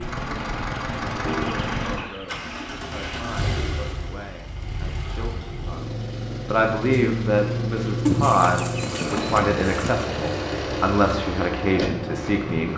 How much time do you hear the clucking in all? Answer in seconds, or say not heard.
4 s.